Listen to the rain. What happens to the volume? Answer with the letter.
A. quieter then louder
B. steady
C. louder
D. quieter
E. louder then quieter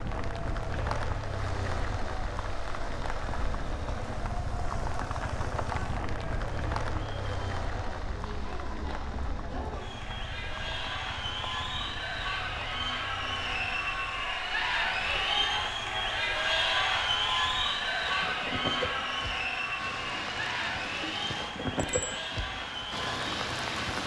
A.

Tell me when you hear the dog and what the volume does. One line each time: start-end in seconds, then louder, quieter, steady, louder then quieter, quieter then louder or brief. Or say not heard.
not heard.